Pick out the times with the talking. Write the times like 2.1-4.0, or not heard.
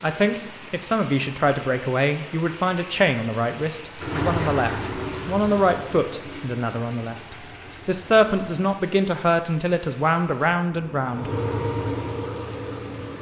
0.0-11.3.